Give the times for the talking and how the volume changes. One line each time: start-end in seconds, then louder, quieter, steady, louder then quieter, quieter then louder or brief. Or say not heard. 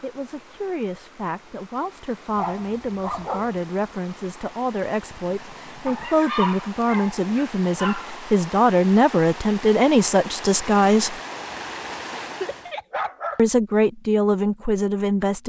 0.0-11.2 louder
13.3-15.4 brief.